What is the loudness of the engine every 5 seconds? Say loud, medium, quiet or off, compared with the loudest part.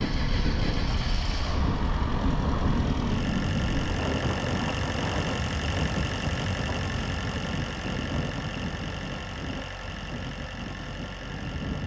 loud, loud, medium.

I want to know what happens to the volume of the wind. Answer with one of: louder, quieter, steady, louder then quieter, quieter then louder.
quieter.